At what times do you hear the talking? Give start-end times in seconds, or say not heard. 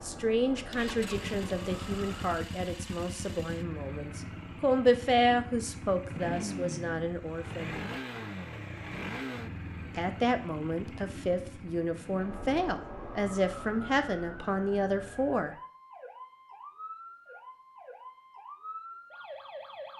0.0-7.8, 9.9-15.6.